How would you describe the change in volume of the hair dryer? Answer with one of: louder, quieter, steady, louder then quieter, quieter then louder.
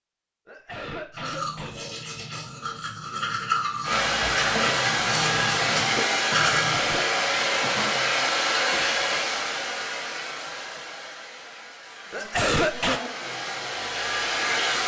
quieter then louder.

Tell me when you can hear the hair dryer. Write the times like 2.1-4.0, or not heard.
3.8-14.8.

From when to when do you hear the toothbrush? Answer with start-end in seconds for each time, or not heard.
1.1-6.8.